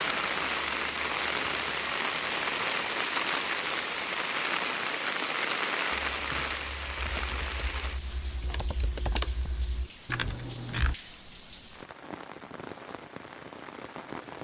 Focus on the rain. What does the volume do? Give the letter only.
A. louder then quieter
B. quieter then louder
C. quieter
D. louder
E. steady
C.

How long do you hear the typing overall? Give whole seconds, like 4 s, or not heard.
5 s.